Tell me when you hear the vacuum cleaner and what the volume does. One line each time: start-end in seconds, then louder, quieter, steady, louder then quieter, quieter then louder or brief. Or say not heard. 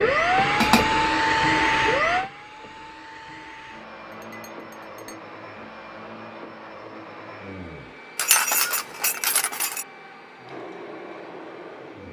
0.0-12.0 quieter.